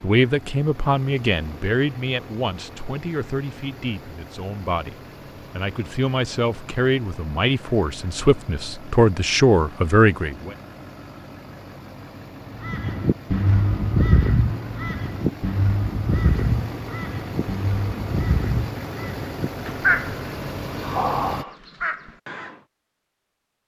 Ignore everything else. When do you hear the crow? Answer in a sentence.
The crow can be heard from 12.6 to 22.6 s.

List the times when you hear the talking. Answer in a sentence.
You can hear the talking from 0.0 to 10.6 s.